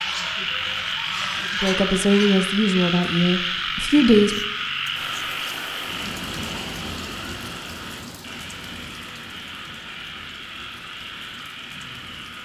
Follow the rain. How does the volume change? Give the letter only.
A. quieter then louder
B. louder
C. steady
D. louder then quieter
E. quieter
E.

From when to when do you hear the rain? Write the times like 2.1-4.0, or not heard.
4.9-12.4.